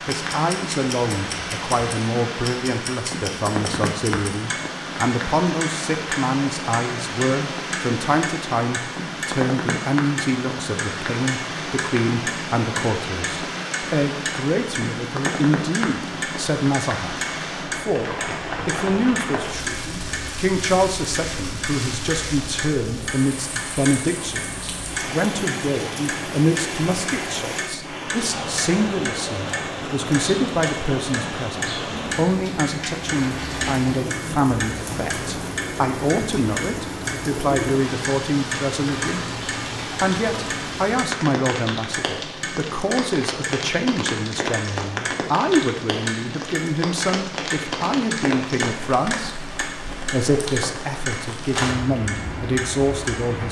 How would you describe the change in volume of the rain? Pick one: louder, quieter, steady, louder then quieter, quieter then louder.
steady.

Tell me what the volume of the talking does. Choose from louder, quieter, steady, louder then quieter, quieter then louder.
steady.